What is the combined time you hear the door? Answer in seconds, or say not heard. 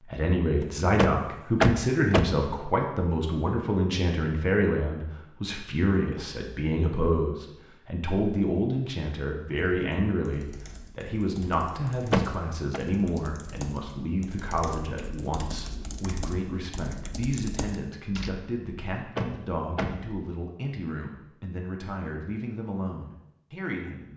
3 s.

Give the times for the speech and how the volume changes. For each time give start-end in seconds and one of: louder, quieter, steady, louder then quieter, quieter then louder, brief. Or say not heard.
0.0-24.1 quieter.